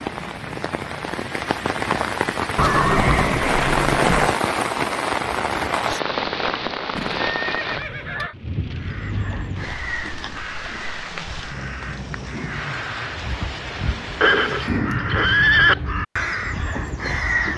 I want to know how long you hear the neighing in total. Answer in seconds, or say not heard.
5 s.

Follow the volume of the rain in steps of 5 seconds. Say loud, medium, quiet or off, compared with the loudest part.
loud, loud, medium, off.